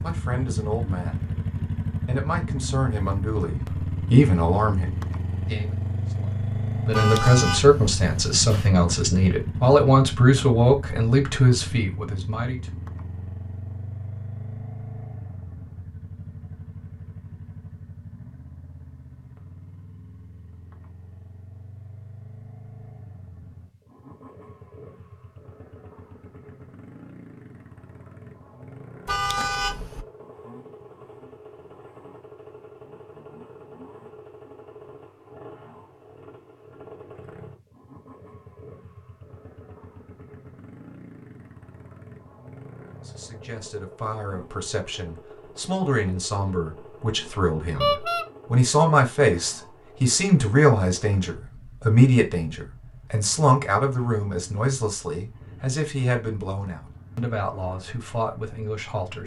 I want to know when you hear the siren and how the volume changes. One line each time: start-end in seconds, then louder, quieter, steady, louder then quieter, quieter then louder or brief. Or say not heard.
not heard.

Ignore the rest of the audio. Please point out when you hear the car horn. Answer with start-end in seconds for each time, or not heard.
6.9-8.7, 29.1-30.1, 47.8-48.2.